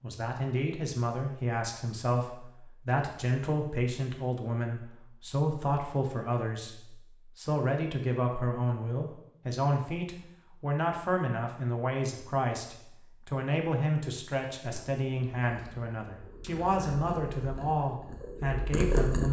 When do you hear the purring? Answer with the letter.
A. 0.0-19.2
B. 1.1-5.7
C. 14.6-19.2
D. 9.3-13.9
C.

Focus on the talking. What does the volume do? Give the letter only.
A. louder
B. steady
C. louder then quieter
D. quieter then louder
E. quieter
B.